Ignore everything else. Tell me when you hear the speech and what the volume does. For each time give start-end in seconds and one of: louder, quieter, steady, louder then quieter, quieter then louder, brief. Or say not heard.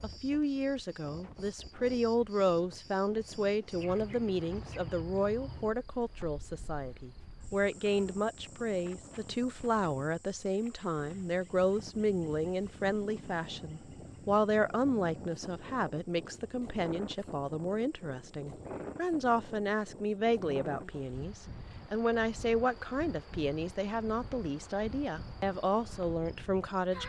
0.0-27.0 steady.